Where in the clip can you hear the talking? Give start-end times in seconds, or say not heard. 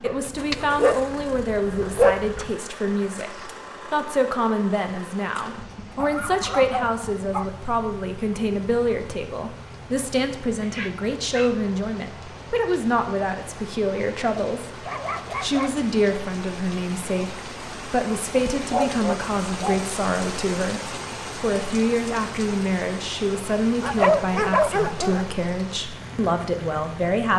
0.0-14.7, 15.4-27.3.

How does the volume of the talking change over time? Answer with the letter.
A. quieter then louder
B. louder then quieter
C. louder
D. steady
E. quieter
D.